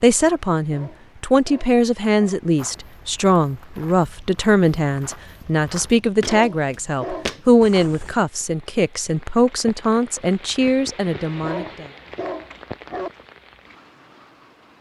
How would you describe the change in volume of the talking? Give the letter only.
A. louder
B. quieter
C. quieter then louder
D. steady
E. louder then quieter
D.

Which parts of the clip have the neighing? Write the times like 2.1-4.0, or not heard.
not heard.